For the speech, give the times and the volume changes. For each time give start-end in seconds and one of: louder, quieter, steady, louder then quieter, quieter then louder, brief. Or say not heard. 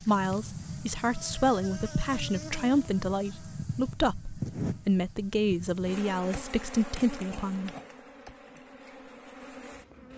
0.0-7.7 steady.